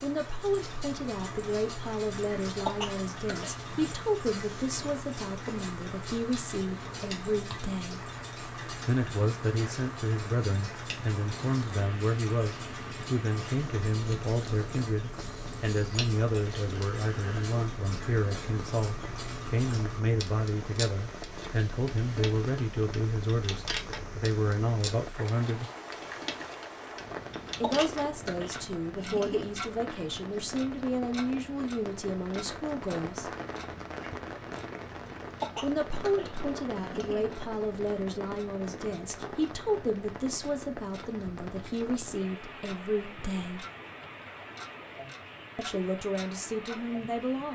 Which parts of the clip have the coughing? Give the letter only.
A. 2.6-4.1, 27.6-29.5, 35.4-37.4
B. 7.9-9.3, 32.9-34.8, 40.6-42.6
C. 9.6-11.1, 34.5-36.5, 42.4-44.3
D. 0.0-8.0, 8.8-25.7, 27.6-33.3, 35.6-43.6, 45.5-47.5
A.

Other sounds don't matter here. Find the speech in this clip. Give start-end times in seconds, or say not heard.
0.0-8.0, 8.8-25.7, 27.6-33.3, 35.6-43.6, 45.5-47.5.